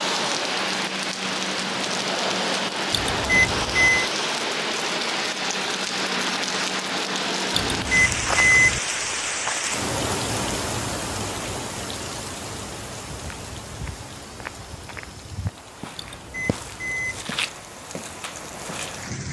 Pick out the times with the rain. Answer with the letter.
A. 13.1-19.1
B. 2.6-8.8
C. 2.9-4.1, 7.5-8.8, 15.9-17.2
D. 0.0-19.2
D.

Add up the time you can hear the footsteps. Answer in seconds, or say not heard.
6 s.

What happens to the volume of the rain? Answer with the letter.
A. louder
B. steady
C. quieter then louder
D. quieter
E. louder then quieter
D.